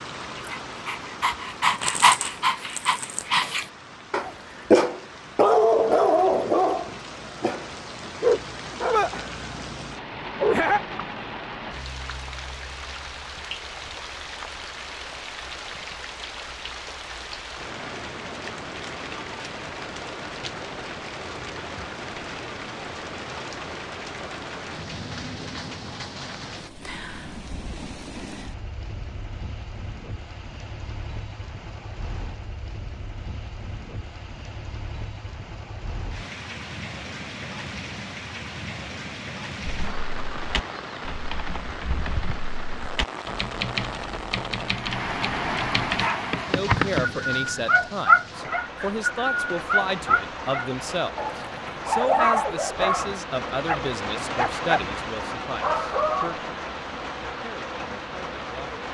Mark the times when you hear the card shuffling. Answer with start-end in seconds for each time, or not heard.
1.7-3.3.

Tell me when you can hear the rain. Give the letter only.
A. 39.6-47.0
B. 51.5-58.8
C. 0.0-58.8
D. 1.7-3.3
C.